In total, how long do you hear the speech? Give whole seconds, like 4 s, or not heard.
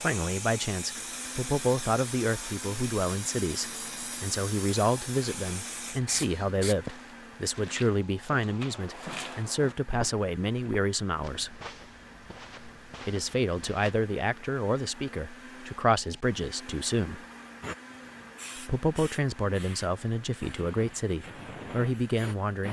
20 s.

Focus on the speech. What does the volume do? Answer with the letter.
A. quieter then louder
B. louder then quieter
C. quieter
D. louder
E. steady
E.